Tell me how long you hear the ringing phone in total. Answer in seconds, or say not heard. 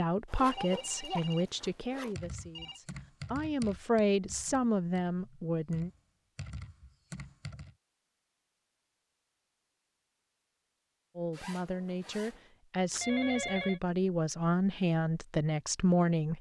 3 s.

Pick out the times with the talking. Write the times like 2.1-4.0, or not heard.
0.0-5.9, 11.2-16.3.